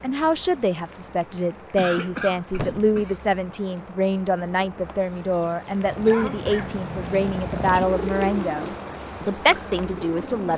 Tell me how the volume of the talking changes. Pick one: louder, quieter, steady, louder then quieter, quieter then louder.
steady.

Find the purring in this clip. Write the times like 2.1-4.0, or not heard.
5.8-10.5.